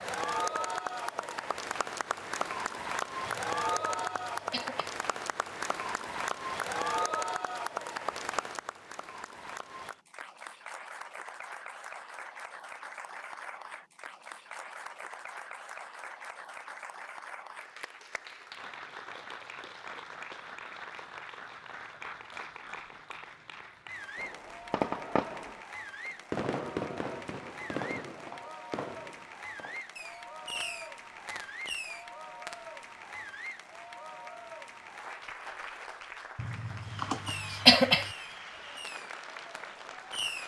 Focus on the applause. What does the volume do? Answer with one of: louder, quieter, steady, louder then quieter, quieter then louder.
quieter.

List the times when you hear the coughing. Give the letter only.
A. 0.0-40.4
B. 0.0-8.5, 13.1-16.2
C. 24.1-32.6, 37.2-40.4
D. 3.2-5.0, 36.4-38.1
D.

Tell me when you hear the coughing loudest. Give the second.
38 s.